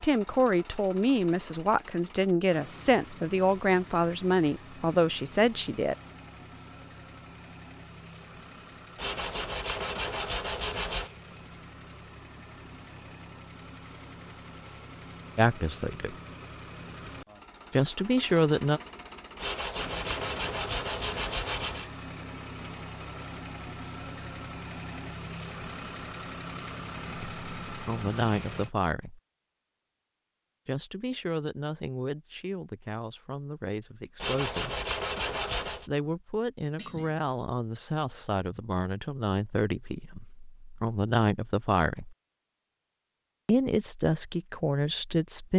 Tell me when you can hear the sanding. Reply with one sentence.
The sanding can be heard from 8.9 to 11.1 s, from 19.4 to 21.9 s and from 34.2 to 35.9 s.